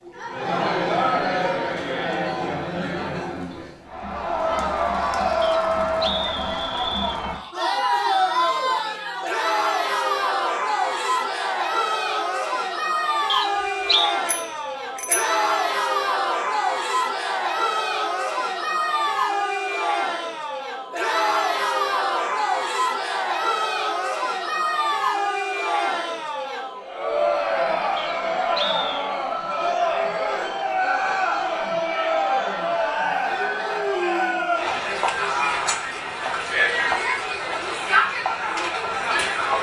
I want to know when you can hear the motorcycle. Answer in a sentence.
The motorcycle can't be heard in this clip.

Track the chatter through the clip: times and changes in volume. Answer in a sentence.
You can hear the chatter from 0.0 to 39.5 s, at a steady volume.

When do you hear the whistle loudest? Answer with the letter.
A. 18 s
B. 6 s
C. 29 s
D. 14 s
D.